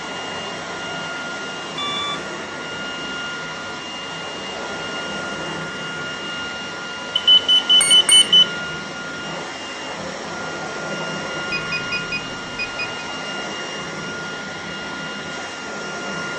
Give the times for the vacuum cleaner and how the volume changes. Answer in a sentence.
You can hear the vacuum cleaner from 0.0 to 16.3 s, at a steady volume.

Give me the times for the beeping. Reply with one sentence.
The beeping can be heard from 1.8 to 2.3 s, from 7.2 to 8.5 s and from 11.5 to 13.1 s.